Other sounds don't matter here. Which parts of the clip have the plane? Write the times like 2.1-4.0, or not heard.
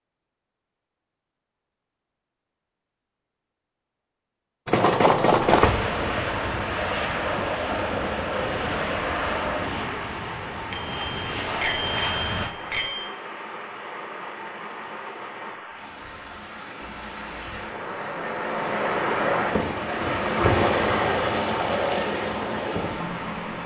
5.5-12.6.